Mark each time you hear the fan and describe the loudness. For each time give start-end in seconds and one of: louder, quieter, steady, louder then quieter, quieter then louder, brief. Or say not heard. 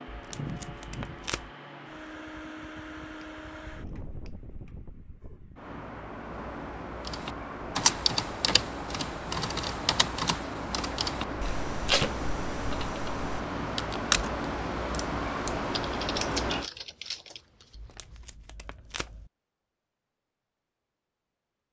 0.0-16.7 louder.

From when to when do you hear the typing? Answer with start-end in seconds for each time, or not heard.
7.0-17.4.